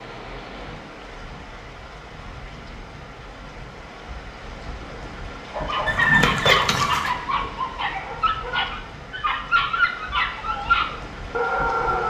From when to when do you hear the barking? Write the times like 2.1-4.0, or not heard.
5.5-12.0.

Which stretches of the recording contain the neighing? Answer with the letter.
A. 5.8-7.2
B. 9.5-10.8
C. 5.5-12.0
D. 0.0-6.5
A.